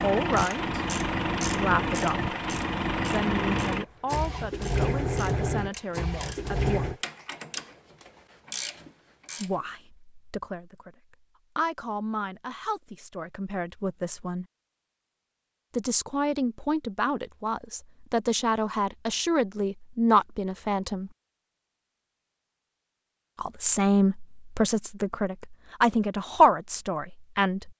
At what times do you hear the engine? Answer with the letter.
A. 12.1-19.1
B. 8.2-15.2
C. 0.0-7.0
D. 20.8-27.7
C.